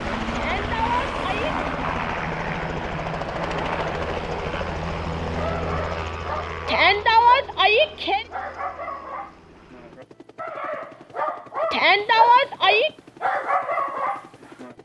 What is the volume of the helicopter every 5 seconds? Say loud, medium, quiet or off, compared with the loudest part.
loud, medium, quiet.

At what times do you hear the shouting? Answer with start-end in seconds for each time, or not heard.
0.3-1.6, 6.7-8.2, 11.7-12.9.